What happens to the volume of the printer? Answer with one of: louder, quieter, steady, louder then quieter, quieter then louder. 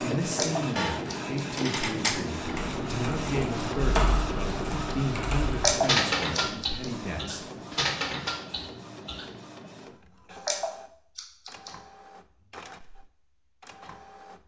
quieter.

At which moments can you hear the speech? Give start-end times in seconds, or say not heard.
0.0-7.5.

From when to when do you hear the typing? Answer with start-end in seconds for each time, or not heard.
2.4-9.3.